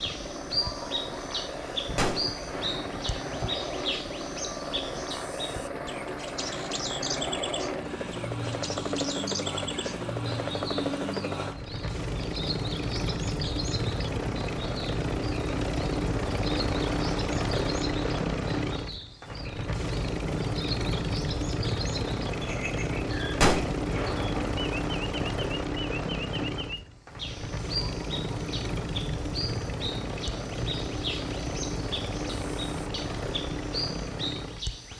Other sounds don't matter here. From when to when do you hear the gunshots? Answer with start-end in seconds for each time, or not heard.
1.9-3.0, 23.4-24.5.